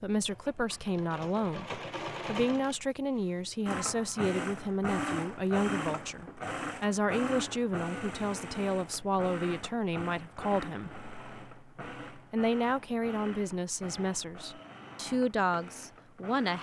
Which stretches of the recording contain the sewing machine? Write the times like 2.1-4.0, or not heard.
0.0-16.5.